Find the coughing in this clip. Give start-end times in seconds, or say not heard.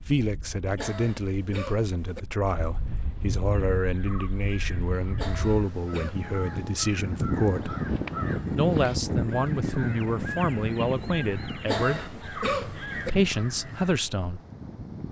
0.8-2.2, 5.2-6.2, 11.7-13.1.